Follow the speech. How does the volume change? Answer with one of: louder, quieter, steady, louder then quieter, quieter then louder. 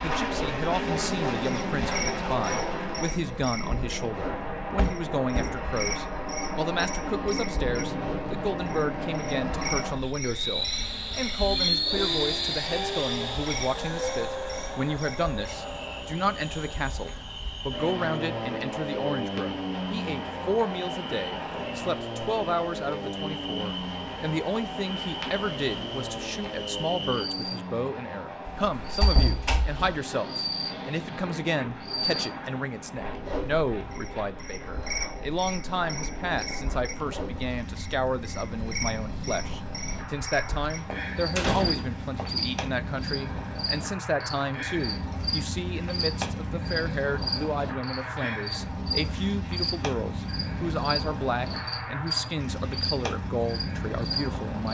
steady.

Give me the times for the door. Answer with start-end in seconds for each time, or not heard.
4.8-5.6, 28.4-30.0, 40.5-42.7.